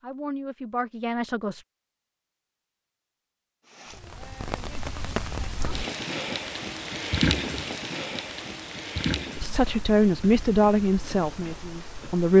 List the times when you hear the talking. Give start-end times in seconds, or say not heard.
0.0-1.6, 9.4-12.3.